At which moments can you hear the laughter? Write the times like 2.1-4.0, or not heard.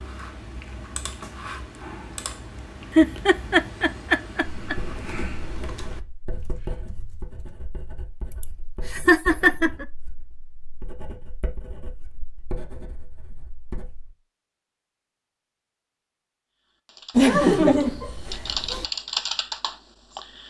2.9-4.8, 8.4-9.8, 17.1-18.9.